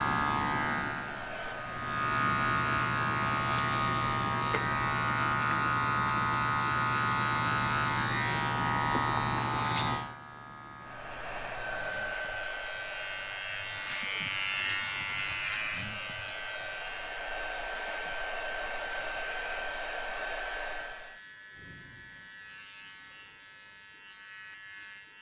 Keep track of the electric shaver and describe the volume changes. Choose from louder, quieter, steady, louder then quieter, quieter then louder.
quieter.